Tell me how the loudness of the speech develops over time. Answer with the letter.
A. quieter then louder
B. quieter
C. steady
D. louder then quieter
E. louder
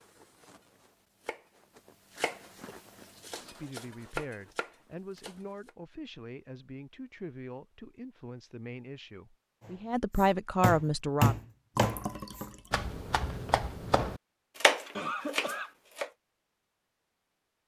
E.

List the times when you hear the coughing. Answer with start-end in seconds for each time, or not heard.
14.9-15.7.